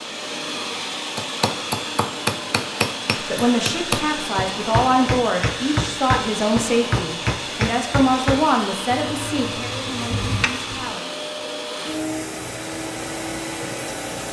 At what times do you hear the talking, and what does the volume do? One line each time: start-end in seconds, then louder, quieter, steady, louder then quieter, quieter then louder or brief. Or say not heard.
3.2-11.1 quieter.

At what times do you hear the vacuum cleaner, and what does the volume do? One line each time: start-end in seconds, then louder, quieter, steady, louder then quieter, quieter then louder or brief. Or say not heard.
0.0-14.2 steady.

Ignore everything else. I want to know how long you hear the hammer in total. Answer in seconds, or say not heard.
10 s.